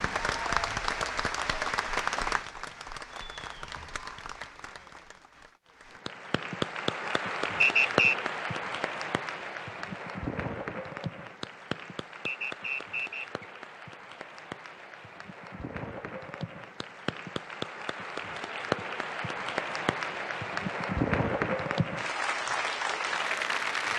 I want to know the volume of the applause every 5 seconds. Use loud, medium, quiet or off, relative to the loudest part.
loud, loud, medium, medium, loud.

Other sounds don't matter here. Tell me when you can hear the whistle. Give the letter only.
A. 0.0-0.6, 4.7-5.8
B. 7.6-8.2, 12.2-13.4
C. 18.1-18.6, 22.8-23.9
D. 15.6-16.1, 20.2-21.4
B.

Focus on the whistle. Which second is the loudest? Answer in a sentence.
The loudest moment of the whistle is at 8 seconds.